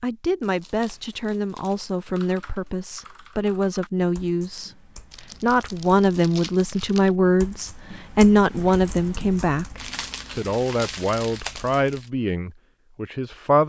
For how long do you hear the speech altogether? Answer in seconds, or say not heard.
13 s.